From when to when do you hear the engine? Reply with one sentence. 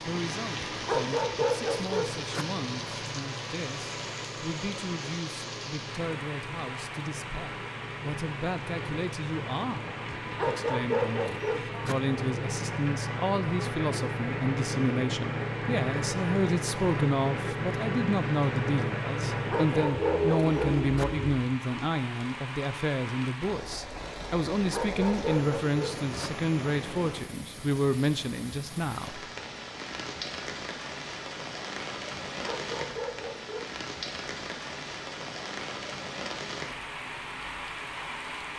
The engine can be heard from 0.0 to 21.4 s.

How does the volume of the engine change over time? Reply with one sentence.
The loudness of the engine goes up.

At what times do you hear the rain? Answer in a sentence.
The rain can be heard from 0.0 to 38.5 s.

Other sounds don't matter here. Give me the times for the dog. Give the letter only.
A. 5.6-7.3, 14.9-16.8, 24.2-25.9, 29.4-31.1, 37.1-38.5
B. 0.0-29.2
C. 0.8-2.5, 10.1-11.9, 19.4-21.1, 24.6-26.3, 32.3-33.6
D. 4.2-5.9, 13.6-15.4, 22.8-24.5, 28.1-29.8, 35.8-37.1
C.